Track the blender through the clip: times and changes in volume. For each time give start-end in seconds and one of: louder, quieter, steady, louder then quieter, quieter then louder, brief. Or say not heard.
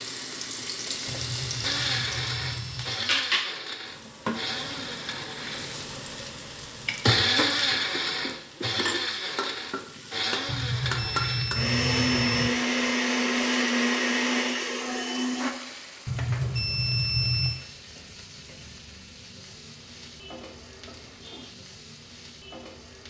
1.6-15.5 louder.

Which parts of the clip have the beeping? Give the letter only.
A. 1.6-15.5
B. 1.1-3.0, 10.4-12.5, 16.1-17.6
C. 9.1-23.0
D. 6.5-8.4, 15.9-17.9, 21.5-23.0
B.